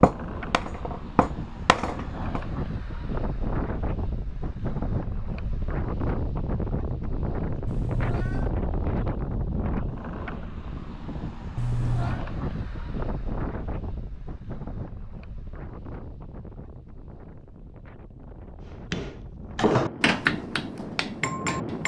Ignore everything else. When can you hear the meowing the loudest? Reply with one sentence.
The volume of the meowing peaks at 12 seconds.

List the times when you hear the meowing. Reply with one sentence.
The meowing can be heard from 7.7 to 8.6 s and from 11.6 to 12.2 s.